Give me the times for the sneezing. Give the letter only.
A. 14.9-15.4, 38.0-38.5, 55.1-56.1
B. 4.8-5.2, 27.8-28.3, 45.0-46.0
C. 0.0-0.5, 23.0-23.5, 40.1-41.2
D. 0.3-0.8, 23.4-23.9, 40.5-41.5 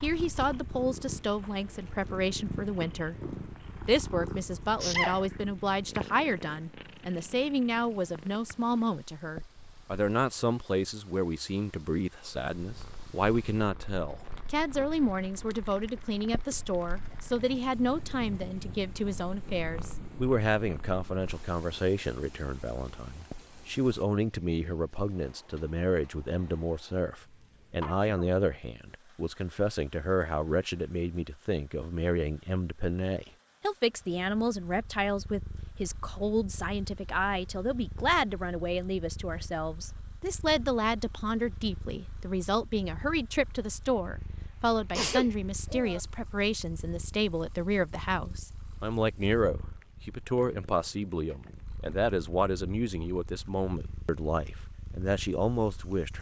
B.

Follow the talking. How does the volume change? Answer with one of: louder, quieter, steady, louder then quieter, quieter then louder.
steady.